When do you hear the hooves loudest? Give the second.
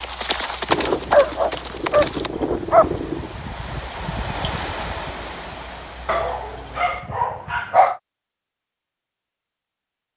1 s.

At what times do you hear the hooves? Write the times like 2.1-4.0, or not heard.
0.0-2.3.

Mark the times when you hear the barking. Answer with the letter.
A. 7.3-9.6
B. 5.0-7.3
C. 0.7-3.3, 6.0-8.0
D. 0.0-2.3
C.